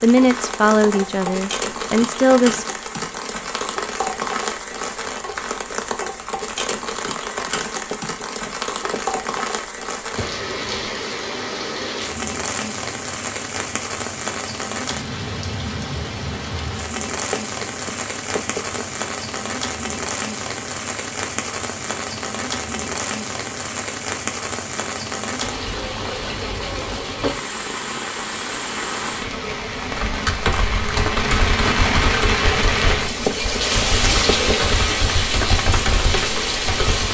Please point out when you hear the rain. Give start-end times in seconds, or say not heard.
0.0-37.0.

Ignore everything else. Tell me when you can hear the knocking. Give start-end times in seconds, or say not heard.
7.9-9.4, 17.3-18.9, 33.2-34.8.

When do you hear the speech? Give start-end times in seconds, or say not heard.
0.0-2.6.